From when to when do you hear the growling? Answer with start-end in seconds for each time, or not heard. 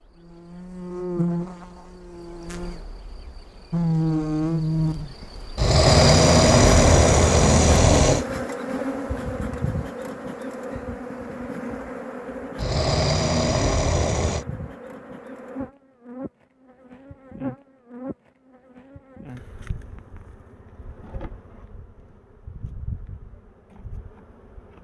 5.5-8.2, 12.6-14.4.